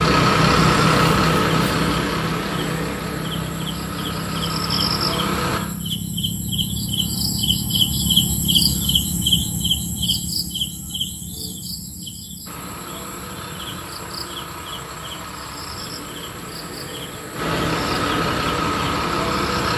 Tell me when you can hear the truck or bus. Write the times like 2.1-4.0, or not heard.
0.0-5.6, 12.4-19.7.